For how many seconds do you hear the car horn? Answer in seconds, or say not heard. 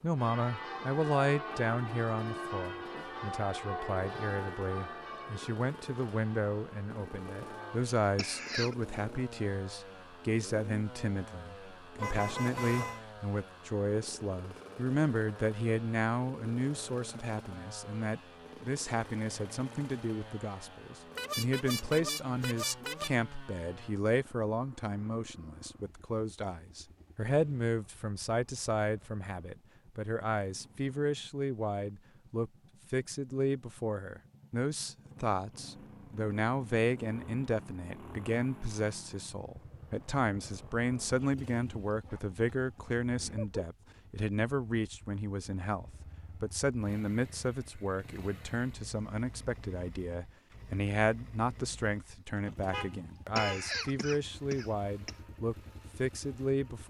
4 s.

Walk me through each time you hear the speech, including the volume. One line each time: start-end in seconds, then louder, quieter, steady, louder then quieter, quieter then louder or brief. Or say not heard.
0.0-56.8 steady.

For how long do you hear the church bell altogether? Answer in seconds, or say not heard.
8 s.